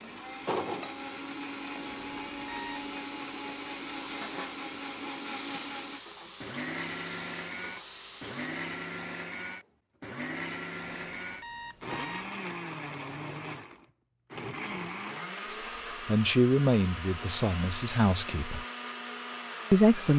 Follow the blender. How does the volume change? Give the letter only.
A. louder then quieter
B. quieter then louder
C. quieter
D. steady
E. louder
D.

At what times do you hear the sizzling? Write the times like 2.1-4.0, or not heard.
0.0-9.0.